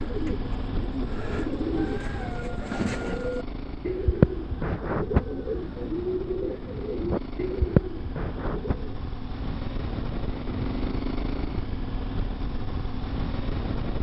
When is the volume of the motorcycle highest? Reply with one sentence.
The volume of the motorcycle peaks at 11 seconds.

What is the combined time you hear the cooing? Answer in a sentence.
The cooing can be heard for 9 seconds in total.